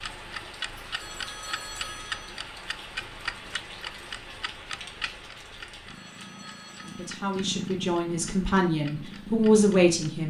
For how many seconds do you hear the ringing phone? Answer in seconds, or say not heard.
3 s.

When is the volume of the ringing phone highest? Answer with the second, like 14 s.
2 s.